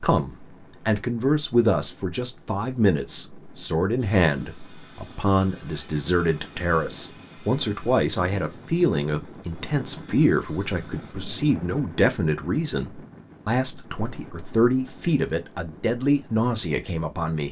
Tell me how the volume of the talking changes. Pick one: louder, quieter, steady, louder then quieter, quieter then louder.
steady.